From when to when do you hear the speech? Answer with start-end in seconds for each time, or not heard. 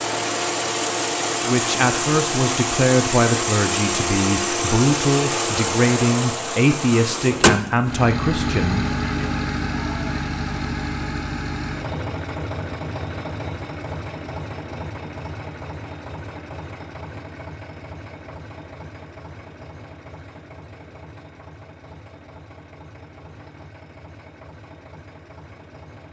1.4-9.3.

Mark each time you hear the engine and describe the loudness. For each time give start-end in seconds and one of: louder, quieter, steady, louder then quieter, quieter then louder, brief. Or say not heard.
0.0-26.0 quieter.